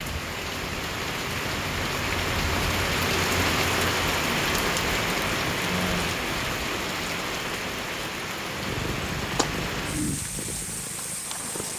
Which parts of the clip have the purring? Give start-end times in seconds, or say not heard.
8.4-11.7.